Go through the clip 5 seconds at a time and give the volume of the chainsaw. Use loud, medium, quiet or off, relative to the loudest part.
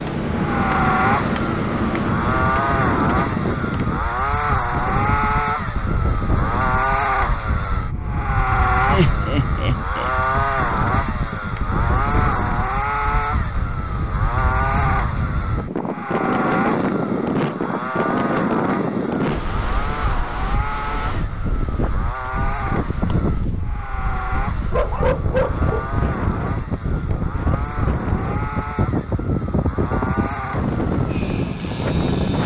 loud, loud, loud, medium, medium, medium, medium.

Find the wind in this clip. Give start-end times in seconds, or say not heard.
0.0-32.4.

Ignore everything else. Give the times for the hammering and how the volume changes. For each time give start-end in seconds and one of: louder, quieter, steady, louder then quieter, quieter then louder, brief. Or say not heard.
not heard.